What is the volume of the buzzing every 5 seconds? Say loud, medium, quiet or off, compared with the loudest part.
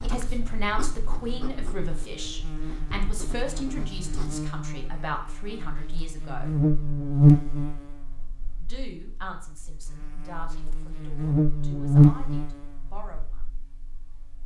quiet, loud, loud.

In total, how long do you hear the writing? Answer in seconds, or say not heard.
4 s.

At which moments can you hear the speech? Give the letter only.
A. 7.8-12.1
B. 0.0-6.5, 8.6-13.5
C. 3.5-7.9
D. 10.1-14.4
B.